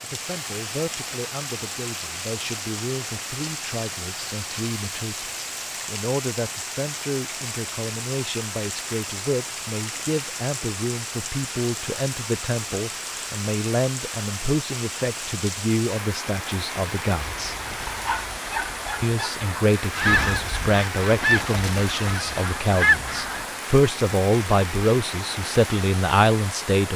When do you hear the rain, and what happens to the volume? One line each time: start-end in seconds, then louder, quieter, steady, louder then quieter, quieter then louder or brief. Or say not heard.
0.0-26.9 steady.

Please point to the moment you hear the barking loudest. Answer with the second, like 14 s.
18 s.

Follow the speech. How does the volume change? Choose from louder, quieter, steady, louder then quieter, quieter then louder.
louder.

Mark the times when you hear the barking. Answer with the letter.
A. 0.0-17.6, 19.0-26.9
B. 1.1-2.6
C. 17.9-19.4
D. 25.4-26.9
C.